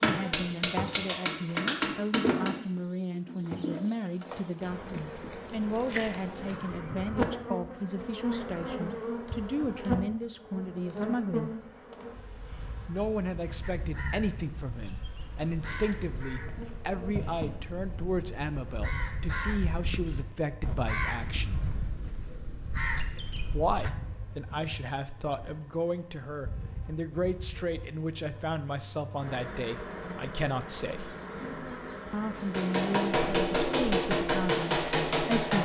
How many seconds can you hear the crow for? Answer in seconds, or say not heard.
10 s.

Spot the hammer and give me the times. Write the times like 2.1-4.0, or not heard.
0.0-2.5, 32.4-35.5.